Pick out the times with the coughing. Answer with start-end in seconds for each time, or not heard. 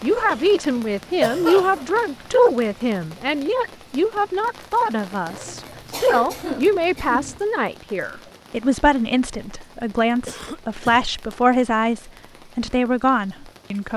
0.1-2.0, 5.2-7.4, 10.2-11.1.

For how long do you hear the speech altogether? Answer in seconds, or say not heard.
14 s.